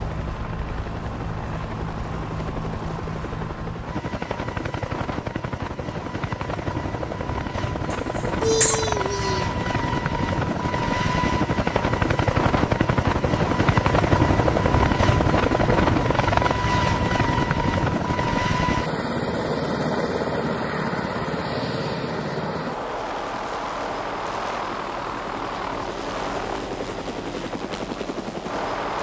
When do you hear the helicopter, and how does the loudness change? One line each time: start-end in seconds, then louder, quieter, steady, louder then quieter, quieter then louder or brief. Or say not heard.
0.0-28.9 louder then quieter.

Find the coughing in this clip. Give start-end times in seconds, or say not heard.
7.9-9.4.